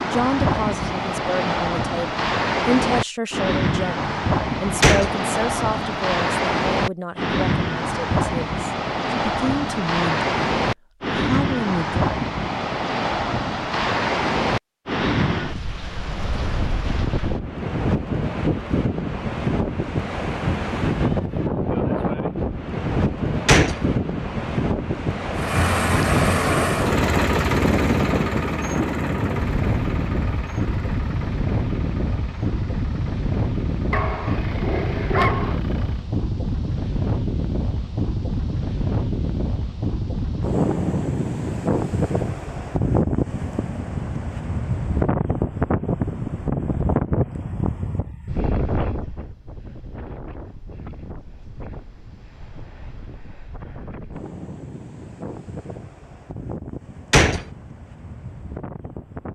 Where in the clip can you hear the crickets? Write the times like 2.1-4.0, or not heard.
not heard.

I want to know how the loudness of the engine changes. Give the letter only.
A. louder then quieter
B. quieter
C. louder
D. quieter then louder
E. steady
B.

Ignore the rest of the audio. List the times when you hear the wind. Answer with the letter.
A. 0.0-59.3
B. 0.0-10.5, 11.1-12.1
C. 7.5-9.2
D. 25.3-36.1
A.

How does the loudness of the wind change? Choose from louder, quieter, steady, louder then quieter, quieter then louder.
quieter.